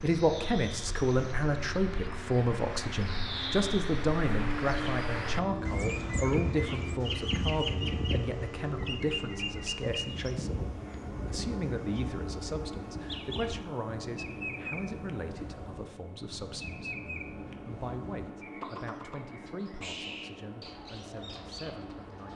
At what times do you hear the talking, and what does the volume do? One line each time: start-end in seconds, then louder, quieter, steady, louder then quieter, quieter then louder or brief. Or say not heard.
0.0-22.3 quieter.